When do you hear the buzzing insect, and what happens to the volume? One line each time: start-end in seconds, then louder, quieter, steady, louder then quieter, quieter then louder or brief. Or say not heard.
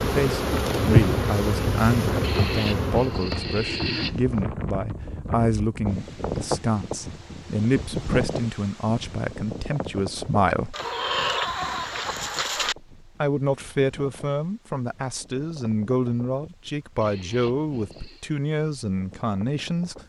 0.0-4.5 quieter.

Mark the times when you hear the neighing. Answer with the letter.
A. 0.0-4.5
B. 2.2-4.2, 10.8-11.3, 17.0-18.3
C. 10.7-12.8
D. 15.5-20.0
B.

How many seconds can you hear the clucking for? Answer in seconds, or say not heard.
2 s.